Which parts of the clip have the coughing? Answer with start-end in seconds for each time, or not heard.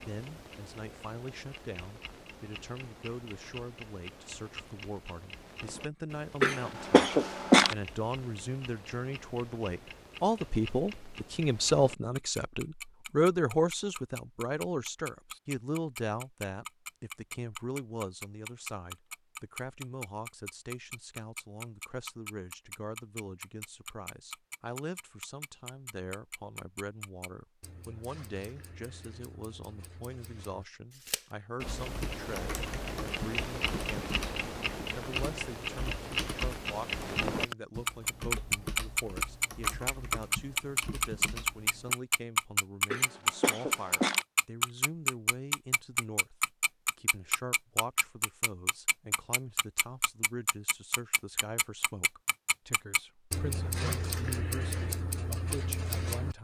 6.4-7.8, 42.9-44.2.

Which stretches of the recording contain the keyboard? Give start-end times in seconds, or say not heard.
31.6-42.0.